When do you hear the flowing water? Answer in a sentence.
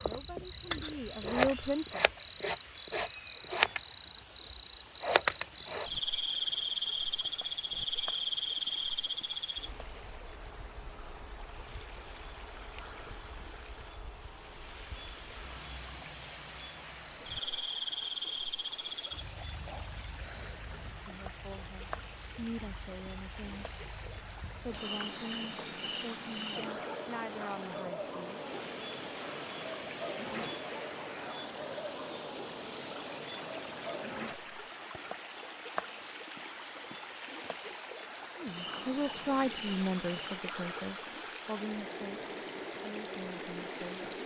The flowing water can be heard from 0.1 to 44.2 s.